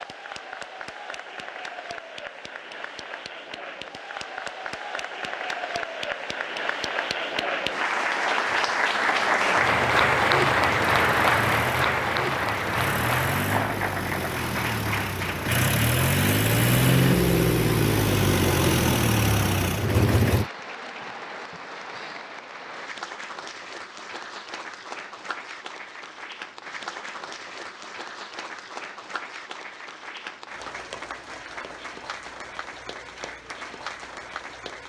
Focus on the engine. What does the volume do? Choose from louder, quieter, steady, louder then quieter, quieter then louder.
louder.